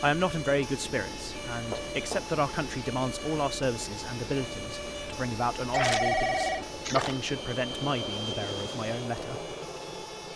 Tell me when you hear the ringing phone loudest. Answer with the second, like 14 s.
6 s.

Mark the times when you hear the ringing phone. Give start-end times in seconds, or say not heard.
1.7-2.4, 5.7-7.2.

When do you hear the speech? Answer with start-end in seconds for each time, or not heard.
0.0-9.6.